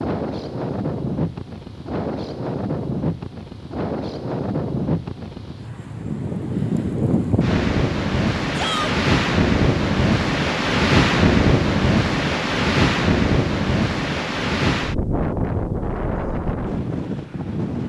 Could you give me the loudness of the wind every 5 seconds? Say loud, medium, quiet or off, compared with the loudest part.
medium, loud, loud, medium.